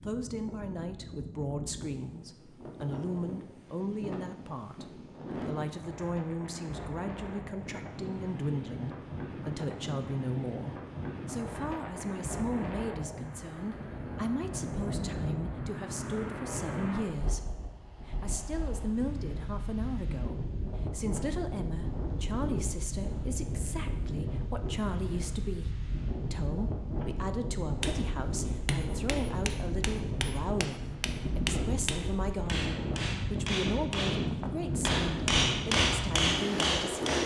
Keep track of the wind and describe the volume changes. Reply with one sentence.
The volume of the wind goes up.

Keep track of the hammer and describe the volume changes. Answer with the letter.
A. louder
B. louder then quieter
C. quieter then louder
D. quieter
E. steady
A.